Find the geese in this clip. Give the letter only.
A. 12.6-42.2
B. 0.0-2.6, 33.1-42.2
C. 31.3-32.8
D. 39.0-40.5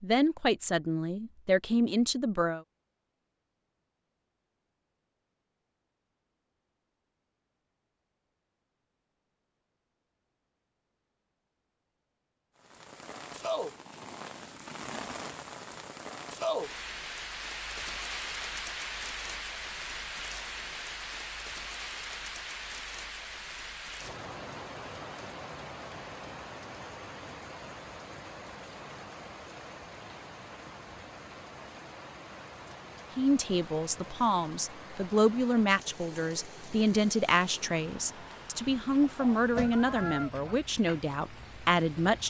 D.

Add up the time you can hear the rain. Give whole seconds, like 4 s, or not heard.
30 s.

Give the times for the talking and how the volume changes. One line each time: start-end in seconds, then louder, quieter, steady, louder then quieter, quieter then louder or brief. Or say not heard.
0.0-2.6 brief
33.1-42.2 steady.